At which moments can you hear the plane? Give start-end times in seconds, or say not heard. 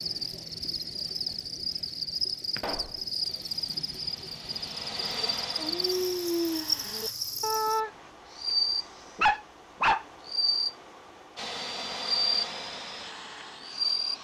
3.2-7.2, 11.3-14.1.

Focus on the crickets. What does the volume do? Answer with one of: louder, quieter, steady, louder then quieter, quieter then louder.
steady.